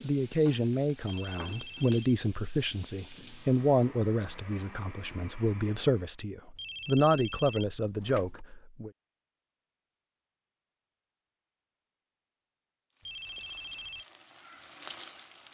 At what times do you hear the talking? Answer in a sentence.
You can hear the talking from 0.0 to 8.9 s.